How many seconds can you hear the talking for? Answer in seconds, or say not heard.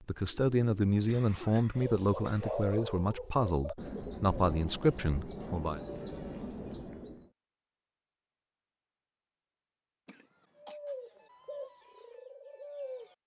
6 s.